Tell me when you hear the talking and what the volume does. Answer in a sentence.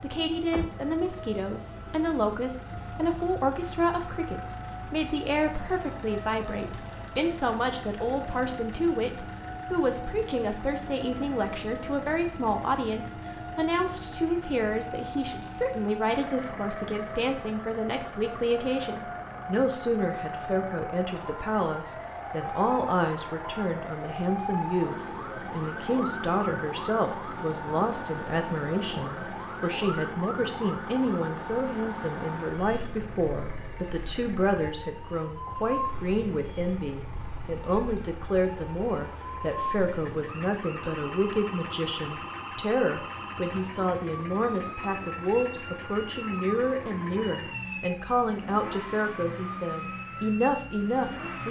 You can hear the talking from 0.0 to 51.4 s, at a steady volume.